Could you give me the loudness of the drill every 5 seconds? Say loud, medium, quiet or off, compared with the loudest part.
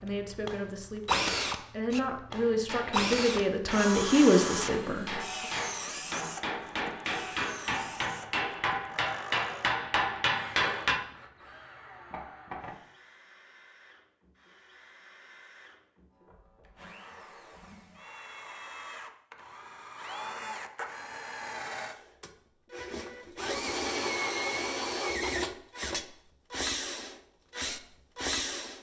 loud, medium, quiet, quiet, loud, loud.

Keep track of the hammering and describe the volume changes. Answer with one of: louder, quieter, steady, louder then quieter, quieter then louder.
louder.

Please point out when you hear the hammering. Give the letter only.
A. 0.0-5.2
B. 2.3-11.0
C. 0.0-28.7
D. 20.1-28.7
B.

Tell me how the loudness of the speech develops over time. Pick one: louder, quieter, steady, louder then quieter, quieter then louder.
louder.